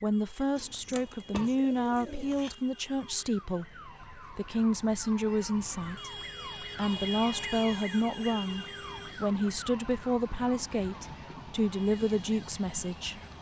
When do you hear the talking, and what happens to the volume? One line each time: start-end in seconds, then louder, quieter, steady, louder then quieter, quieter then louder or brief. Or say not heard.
0.0-13.2 steady.